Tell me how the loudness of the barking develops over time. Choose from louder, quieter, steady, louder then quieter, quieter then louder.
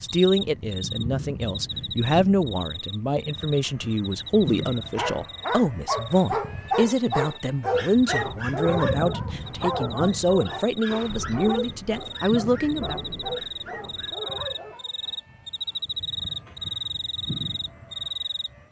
quieter.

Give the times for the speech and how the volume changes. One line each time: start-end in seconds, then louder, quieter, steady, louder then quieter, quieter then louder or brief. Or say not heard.
0.0-12.9 steady.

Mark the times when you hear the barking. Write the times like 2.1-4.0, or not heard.
4.8-15.2.